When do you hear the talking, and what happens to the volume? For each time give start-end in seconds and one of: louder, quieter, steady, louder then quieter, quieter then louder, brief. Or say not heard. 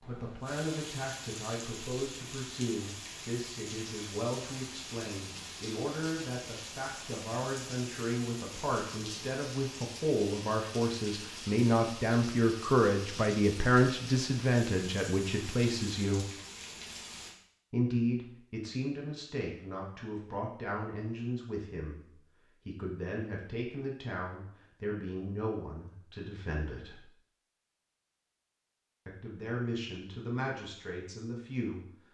0.1-16.3 louder
17.7-27.0 steady
29.1-31.9 brief.